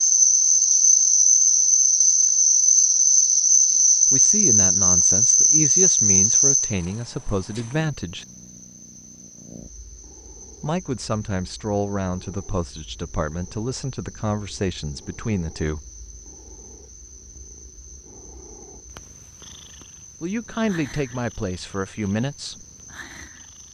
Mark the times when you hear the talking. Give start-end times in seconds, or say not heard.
4.1-8.2, 10.6-15.8, 20.2-22.6.